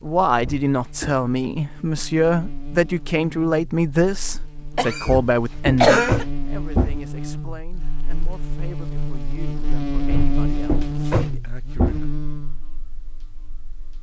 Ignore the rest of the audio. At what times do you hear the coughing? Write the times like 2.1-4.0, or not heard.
4.8-6.2.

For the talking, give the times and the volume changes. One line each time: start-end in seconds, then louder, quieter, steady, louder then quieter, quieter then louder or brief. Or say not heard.
0.0-12.1 quieter.